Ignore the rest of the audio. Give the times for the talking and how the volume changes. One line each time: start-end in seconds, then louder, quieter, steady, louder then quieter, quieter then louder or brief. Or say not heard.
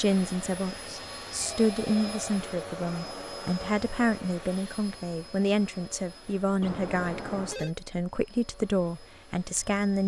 0.0-10.0 steady.